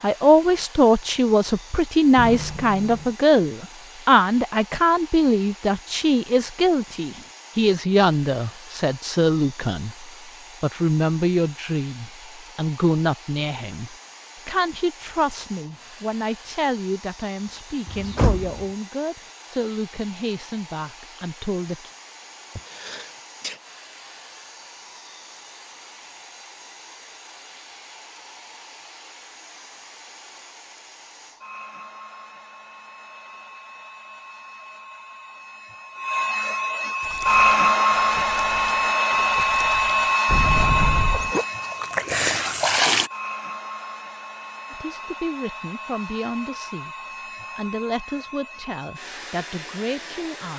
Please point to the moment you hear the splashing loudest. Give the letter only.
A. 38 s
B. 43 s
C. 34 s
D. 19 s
B.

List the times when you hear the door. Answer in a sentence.
The door can be heard from 2.1 to 3.1 s, from 17.9 to 18.6 s and from 40.2 to 41.4 s.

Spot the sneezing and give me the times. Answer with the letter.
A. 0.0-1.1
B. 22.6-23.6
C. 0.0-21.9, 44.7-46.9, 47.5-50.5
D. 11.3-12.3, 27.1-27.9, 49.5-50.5
B.